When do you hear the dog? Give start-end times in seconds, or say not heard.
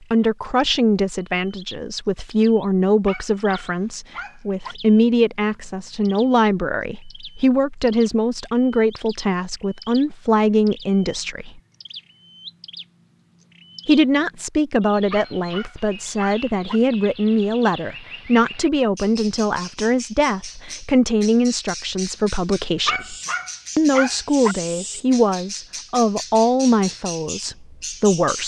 3.0-4.8, 15.1-16.8, 22.9-24.6.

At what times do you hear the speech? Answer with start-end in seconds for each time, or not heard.
0.1-11.6, 13.8-23.1, 23.8-28.4.